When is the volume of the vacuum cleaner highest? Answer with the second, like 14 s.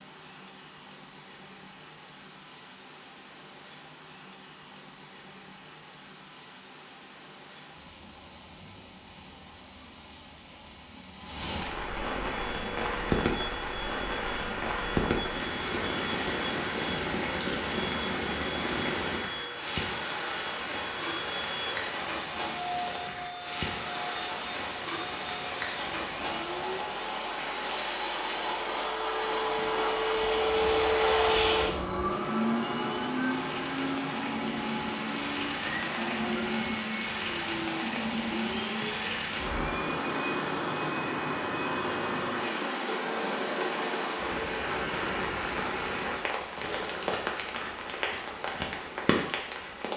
31 s.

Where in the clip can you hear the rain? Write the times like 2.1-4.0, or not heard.
0.0-49.9.